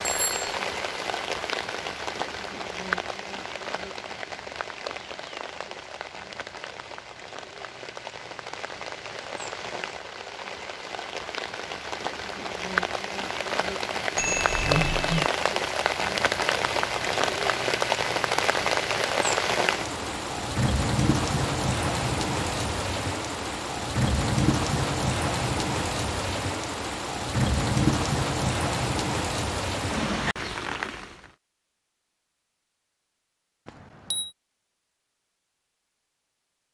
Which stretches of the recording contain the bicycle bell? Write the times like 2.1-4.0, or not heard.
0.0-0.6, 14.2-15.3, 33.6-34.3.